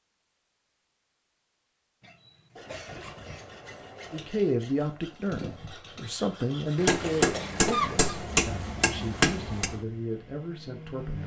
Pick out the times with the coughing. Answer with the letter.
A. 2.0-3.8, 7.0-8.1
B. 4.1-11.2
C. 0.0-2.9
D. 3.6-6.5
A.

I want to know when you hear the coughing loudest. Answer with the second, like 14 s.
8 s.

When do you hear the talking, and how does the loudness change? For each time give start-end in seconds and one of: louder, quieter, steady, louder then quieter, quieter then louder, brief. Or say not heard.
4.1-11.2 quieter.